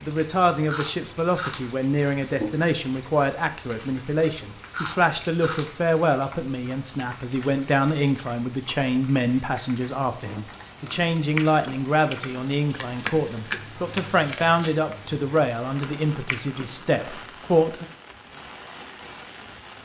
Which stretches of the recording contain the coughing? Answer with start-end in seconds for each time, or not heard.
not heard.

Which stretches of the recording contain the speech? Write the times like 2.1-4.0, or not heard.
0.0-17.9.